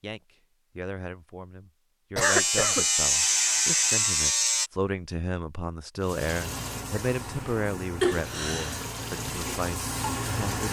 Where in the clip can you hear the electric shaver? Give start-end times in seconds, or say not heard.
2.2-4.7.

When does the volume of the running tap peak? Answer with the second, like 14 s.
10 s.